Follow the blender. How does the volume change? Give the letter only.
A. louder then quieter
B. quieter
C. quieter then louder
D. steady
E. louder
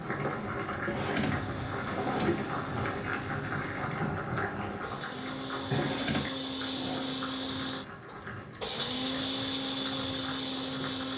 E.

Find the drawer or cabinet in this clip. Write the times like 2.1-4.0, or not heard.
0.8-2.5, 5.8-7.2.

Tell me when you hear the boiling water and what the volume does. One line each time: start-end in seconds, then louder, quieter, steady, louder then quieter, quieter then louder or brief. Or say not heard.
0.0-11.1 quieter.